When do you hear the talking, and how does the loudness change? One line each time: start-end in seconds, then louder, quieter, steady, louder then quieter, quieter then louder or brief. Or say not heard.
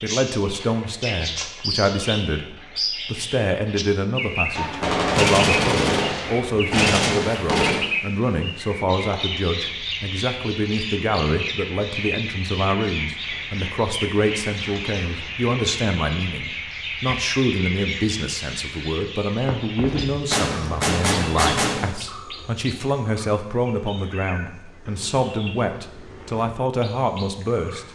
0.0-27.9 steady.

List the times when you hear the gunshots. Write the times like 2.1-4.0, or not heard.
4.5-7.8, 20.2-21.9.